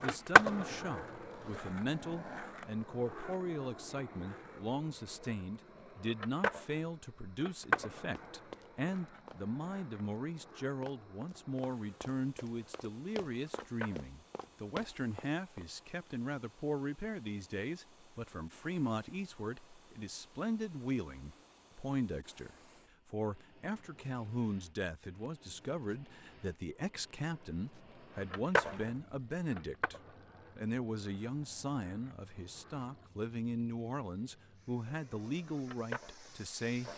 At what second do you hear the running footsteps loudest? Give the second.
15 s.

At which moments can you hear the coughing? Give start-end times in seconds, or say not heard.
not heard.